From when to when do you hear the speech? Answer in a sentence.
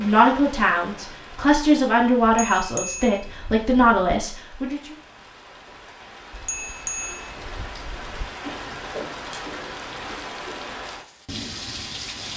The speech can be heard from 0.0 to 5.0 s.